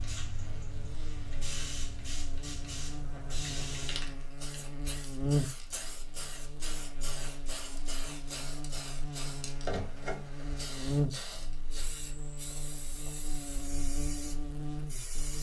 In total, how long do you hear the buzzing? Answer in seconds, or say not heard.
15 s.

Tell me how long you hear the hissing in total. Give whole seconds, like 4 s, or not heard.
15 s.